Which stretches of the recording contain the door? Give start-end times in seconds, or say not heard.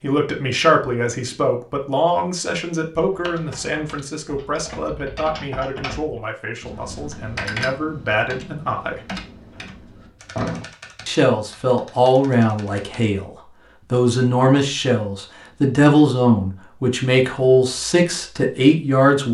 9.2-10.7.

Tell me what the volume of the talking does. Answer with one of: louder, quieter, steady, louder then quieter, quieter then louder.
quieter then louder.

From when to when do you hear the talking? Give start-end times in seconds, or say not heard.
0.0-9.2, 11.1-19.3.